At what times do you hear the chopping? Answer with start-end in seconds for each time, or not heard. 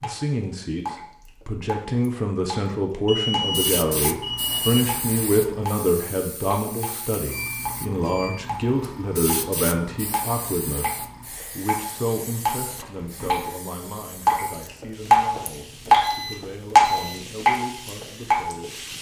not heard.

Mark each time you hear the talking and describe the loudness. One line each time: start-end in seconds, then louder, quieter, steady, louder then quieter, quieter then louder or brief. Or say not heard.
0.0-18.9 quieter.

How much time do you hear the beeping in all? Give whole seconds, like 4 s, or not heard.
4 s.